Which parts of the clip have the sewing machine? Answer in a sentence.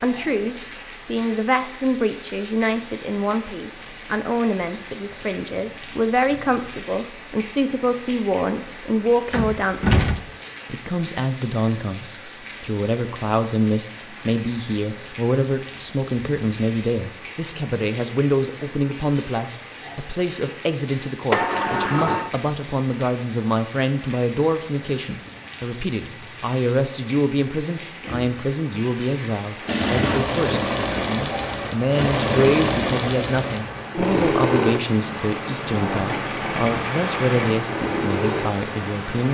You can hear the sewing machine from 29.6 to 39.0 s.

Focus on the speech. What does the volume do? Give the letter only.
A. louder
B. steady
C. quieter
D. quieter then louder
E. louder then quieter
B.